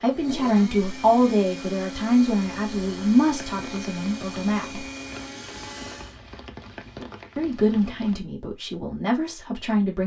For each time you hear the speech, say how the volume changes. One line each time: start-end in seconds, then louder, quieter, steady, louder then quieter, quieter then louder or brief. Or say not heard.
0.0-4.8 quieter
7.3-10.0 brief.